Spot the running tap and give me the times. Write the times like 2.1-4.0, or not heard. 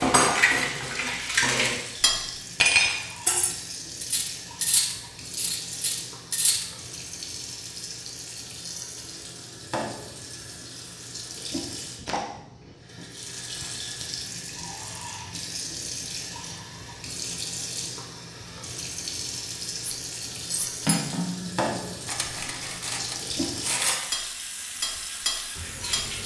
0.1-26.2.